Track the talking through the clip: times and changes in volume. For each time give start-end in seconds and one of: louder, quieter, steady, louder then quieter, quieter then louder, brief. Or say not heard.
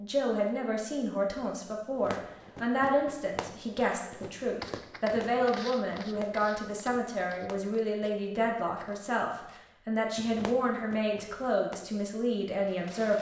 0.0-13.1 steady.